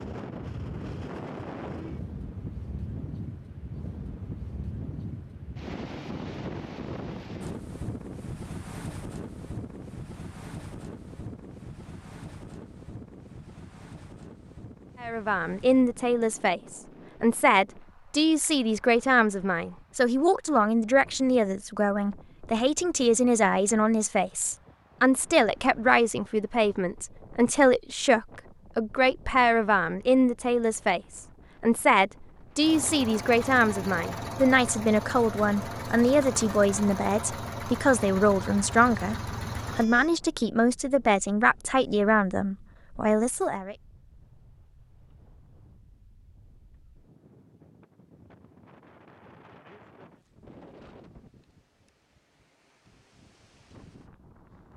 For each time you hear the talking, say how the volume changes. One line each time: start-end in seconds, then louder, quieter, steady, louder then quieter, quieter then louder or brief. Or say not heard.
15.0-39.1 steady
39.8-43.8 steady.